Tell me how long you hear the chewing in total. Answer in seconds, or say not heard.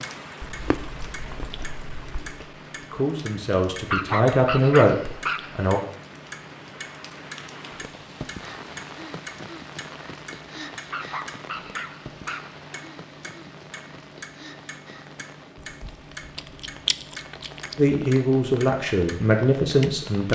4 s.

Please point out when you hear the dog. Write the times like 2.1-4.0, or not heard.
3.9-5.8, 10.9-12.6.